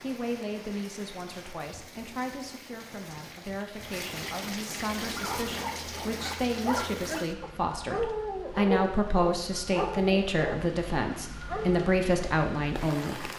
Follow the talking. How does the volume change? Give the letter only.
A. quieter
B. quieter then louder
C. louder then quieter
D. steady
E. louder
E.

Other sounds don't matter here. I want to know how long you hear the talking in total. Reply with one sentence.
The talking can be heard for 13 seconds in total.